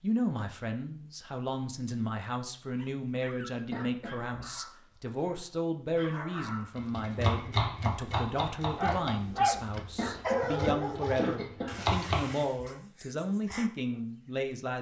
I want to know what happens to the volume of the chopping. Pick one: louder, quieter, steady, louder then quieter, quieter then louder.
quieter then louder.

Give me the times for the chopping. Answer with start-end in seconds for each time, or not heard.
6.8-12.3.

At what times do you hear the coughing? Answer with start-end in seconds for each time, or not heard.
3.7-4.5, 9.9-11.9.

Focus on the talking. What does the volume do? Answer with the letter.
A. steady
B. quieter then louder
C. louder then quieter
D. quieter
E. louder
A.